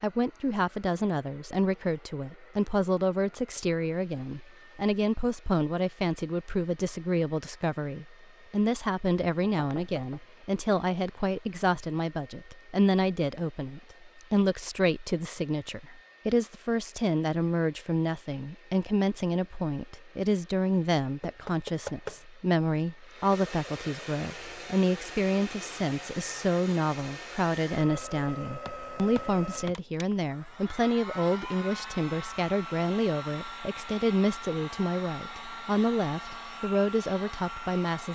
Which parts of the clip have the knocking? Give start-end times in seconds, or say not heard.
9.6-10.2, 21.2-22.2, 28.6-29.8.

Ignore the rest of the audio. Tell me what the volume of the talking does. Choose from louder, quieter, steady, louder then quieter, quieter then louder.
steady.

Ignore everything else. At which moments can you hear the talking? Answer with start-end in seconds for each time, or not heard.
0.0-38.1.